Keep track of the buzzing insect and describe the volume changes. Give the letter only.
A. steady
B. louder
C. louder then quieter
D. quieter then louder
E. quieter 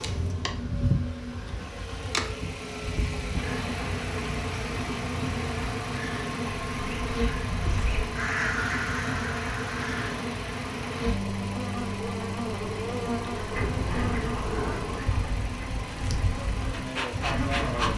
A.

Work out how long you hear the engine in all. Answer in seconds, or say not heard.
18 s.